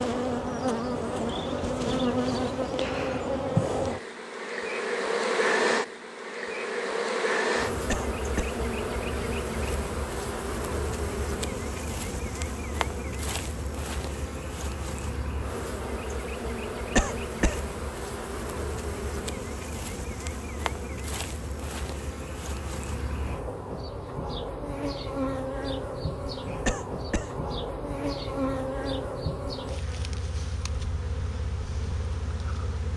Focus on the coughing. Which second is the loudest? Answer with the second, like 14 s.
17 s.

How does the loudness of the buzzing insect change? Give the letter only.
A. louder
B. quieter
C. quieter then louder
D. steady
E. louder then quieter
B.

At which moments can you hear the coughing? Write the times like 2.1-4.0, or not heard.
7.8-8.6, 16.9-17.6, 26.6-27.3.